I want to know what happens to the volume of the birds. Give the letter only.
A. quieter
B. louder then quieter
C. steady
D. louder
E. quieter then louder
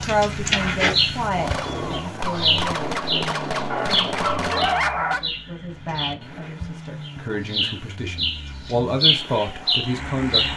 E.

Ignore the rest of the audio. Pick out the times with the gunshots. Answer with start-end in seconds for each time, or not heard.
1.4-4.8.